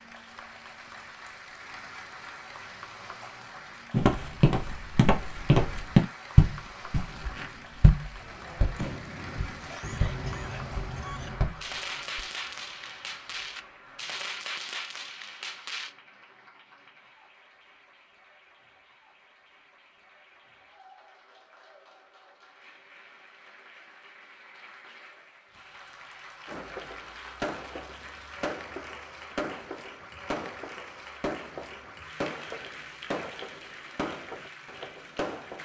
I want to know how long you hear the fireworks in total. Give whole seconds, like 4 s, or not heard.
18 s.